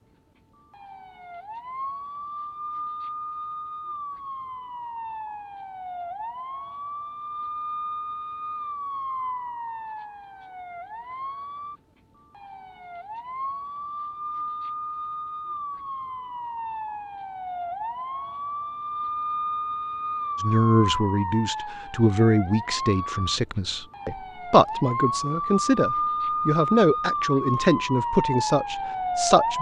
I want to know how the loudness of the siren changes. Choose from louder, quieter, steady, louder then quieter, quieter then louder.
louder.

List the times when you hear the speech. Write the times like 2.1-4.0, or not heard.
20.4-29.5.